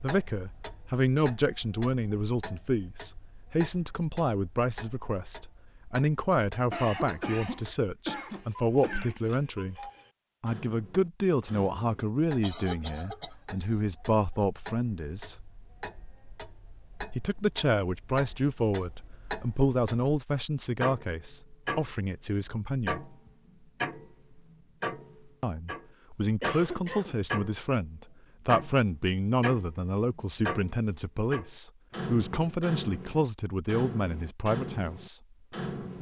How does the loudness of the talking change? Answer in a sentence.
The volume of the talking stays about the same.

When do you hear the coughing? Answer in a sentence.
You can hear the coughing from 6.7 to 9.2 s, from 12.4 to 13.3 s and from 26.4 to 27.2 s.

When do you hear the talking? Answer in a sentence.
The talking can be heard from 0.0 to 9.8 s, from 10.4 to 15.3 s, from 17.1 to 23.0 s and from 25.4 to 35.2 s.